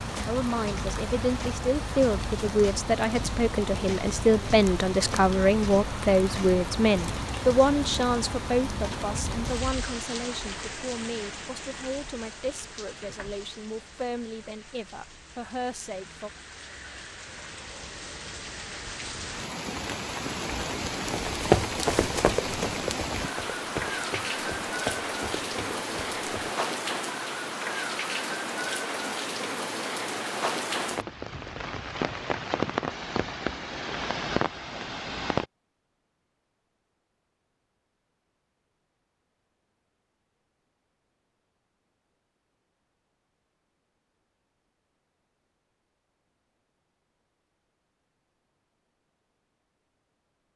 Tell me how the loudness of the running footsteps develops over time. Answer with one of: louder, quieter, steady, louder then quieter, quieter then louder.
quieter.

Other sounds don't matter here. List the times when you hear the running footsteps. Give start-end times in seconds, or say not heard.
21.1-26.6.